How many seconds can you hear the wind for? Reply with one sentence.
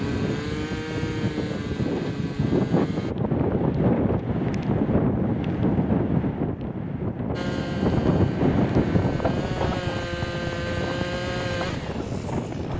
The wind can be heard for 13 seconds in total.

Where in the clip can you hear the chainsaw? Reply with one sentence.
You can hear the chainsaw from 0.0 to 3.1 s and from 7.3 to 12.7 s.